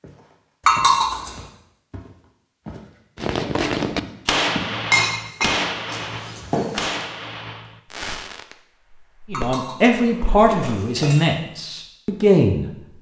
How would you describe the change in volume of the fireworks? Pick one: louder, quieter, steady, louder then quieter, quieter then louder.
quieter.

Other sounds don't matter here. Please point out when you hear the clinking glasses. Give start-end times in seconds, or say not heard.
0.7-1.4, 4.9-6.7, 9.3-11.3.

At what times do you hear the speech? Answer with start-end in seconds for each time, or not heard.
9.3-12.7.